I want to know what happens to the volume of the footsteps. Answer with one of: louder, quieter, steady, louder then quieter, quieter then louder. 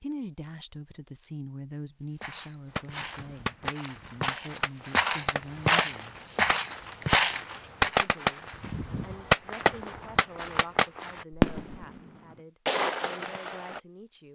louder.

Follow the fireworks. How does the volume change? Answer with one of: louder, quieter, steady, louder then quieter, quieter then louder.
louder.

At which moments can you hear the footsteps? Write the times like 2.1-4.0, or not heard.
2.2-8.1.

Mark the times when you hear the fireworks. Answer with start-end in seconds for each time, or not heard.
2.7-13.8.